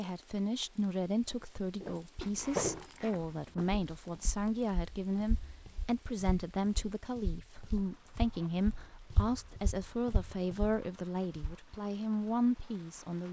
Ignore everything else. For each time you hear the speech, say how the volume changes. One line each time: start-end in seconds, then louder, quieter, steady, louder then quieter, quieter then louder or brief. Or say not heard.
0.0-13.2 steady.